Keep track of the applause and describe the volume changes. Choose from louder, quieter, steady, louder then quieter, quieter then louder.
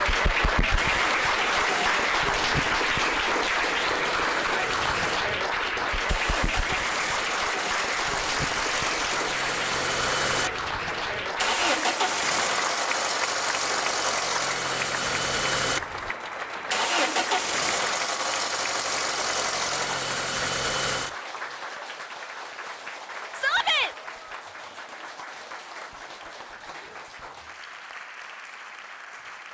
quieter.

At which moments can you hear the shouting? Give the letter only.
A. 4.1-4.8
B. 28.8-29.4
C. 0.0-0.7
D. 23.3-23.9
D.